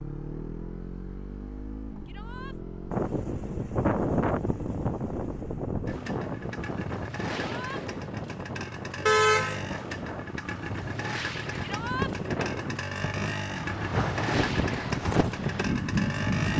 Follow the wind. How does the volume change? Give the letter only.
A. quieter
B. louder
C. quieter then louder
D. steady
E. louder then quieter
C.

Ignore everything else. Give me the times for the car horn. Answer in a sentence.
You can hear the car horn from 9.1 to 9.7 s.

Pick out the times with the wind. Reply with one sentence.
You can hear the wind from 2.9 to 16.5 s.